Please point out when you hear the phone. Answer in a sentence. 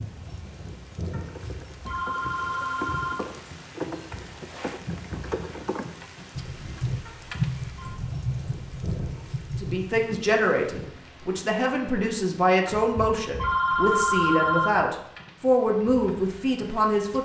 You can hear the phone from 1.1 to 3.1 s, from 7.0 to 7.9 s and from 12.7 to 14.7 s.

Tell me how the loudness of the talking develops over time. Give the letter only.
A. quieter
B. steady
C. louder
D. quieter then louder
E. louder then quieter
B.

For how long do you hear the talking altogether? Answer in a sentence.
You can hear the talking for 8 seconds altogether.